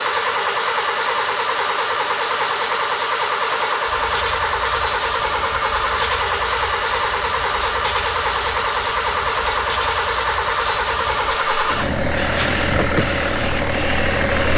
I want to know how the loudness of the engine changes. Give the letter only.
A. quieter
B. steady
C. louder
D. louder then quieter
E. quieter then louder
B.